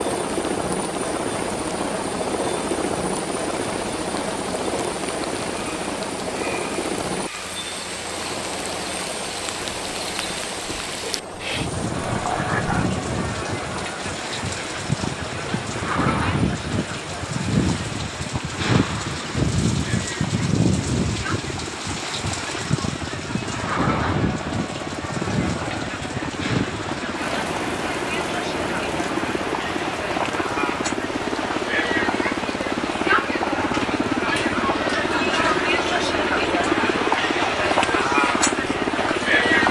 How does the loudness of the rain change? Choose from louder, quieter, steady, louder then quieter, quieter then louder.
louder then quieter.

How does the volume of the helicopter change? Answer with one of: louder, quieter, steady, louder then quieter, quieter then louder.
quieter then louder.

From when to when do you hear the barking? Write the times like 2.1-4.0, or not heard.
12.1-12.9.